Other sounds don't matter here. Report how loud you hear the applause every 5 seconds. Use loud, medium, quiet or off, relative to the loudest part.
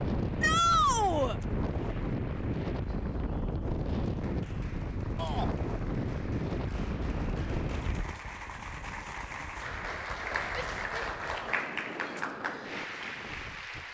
quiet, medium, loud.